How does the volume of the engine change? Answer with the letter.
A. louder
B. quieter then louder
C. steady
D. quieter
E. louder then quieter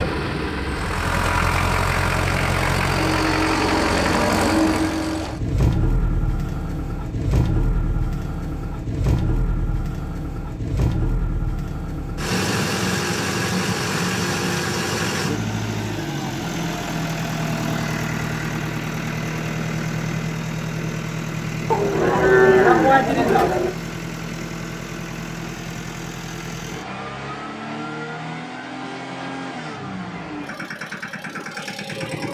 D.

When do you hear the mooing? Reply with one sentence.
The mooing can be heard from 21.7 to 23.7 s.